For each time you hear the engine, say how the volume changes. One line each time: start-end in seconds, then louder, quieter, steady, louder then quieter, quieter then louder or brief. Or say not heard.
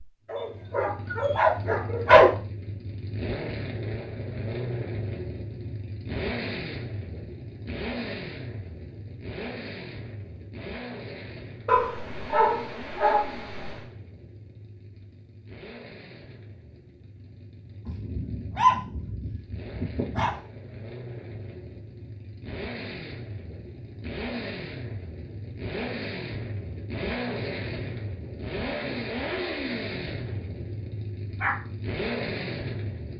0.0-33.1 quieter then louder.